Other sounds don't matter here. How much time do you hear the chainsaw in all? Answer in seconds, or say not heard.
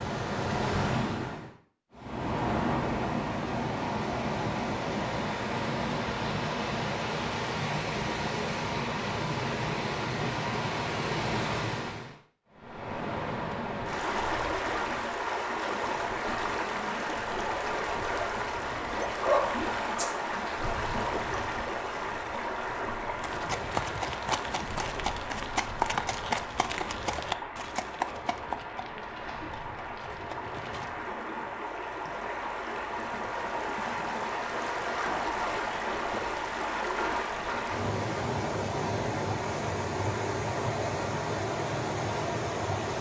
not heard.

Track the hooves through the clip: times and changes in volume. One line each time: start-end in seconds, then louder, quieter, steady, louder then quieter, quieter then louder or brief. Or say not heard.
23.1-31.1 quieter.